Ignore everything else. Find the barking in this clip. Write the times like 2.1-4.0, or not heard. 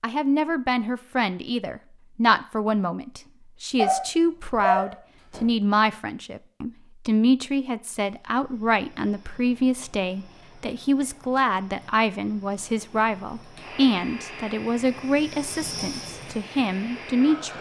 3.8-5.5.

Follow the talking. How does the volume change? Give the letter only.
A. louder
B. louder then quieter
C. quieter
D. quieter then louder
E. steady
E.